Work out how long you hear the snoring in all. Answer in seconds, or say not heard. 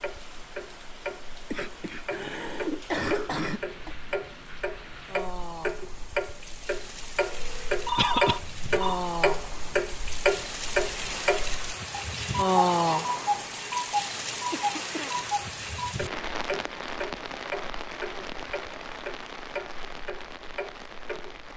not heard.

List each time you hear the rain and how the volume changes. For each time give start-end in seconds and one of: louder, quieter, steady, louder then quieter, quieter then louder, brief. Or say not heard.
0.0-21.5 louder then quieter.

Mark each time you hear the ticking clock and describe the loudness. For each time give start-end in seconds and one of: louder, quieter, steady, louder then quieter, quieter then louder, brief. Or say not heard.
0.0-21.5 louder then quieter.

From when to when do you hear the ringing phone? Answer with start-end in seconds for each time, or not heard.
7.2-9.0.